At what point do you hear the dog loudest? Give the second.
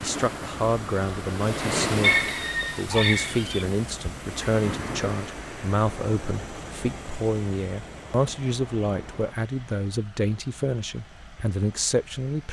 2 s.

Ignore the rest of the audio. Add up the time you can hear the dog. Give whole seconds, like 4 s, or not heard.
2 s.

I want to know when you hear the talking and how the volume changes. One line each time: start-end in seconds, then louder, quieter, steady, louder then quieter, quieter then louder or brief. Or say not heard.
0.0-12.4 steady.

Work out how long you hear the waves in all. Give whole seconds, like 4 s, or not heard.
9 s.